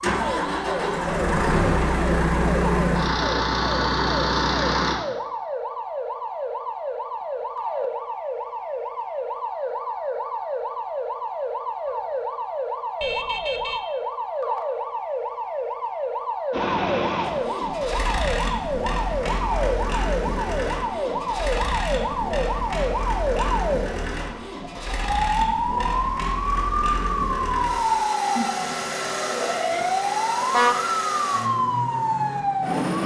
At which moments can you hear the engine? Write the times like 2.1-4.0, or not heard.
0.0-5.0, 16.5-32.9.